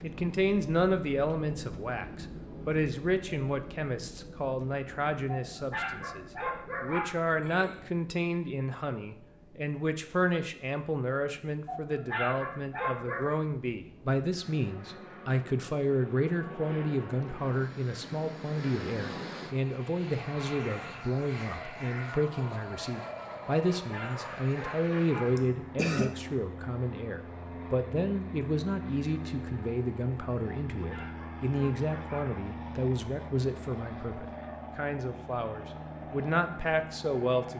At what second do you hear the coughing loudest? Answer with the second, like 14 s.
26 s.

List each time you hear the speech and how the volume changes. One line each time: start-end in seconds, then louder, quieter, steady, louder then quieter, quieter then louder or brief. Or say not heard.
0.0-37.5 steady.